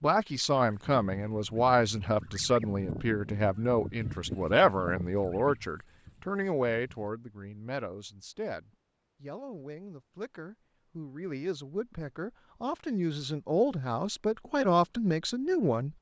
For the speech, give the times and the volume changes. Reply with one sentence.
You can hear the speech from 0.0 to 15.9 s, getting quieter then louder.